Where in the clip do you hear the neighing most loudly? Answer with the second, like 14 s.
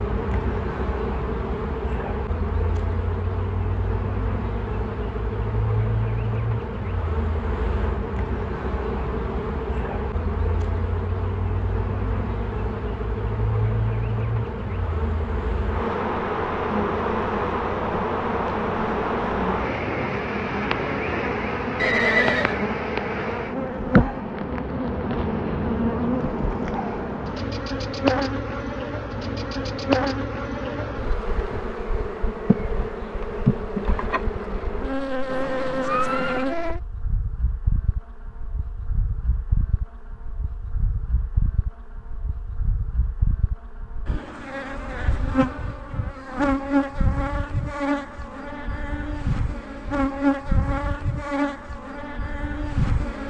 22 s.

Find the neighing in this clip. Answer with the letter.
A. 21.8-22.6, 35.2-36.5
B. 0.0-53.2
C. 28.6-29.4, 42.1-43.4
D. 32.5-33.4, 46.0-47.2
A.